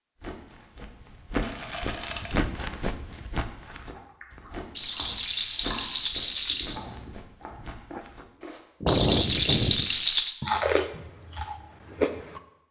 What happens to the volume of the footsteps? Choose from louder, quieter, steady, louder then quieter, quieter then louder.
quieter.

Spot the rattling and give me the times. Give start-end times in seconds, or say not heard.
1.4-2.4, 4.8-6.8, 8.8-10.3.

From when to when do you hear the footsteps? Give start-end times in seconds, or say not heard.
0.2-8.7.